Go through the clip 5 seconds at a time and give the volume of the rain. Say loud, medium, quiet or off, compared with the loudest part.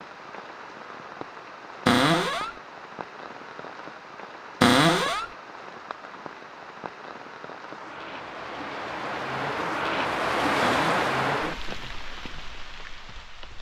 quiet, medium, loud.